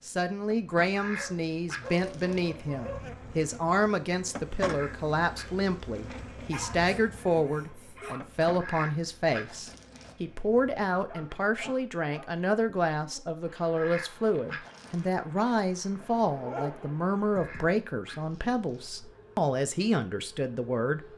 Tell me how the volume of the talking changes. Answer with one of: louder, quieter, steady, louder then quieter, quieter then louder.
steady.